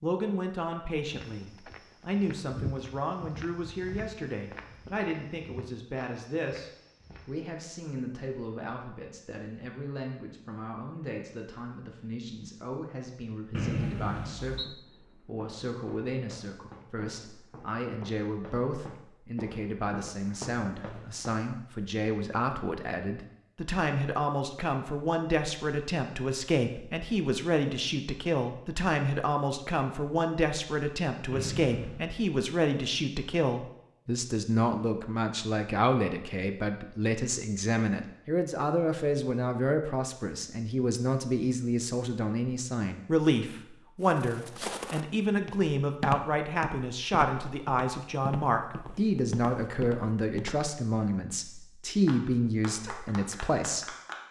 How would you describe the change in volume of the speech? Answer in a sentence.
The volume of the speech goes up.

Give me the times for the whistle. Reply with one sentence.
The whistle can be heard from 13.5 to 14.7 s and from 31.3 to 32.0 s.